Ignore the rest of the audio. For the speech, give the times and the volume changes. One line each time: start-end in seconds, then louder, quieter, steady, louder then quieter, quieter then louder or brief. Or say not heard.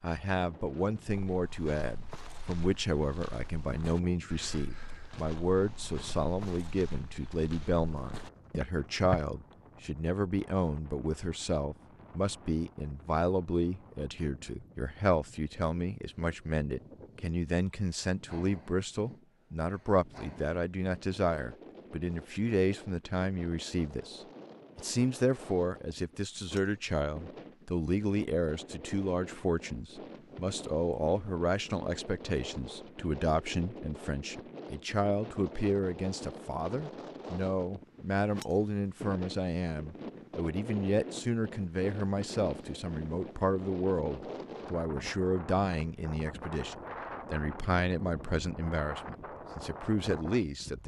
0.0-50.8 steady.